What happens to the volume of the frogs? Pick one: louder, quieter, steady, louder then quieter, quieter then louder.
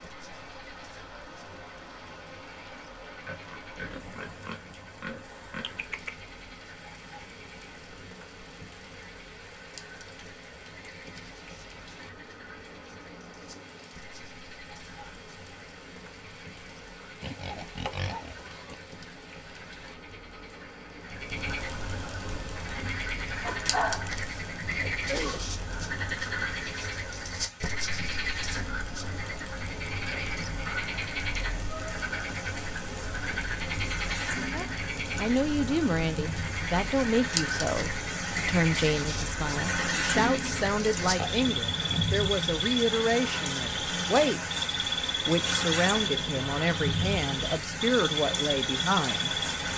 louder.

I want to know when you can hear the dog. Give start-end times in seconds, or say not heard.
23.4-25.4.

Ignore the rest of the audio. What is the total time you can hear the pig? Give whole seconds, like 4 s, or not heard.
6 s.